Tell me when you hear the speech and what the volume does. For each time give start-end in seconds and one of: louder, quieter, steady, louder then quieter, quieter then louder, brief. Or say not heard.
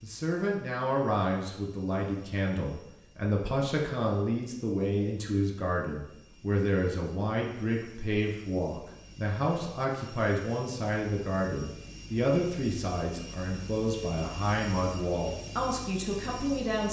0.0-16.8 steady.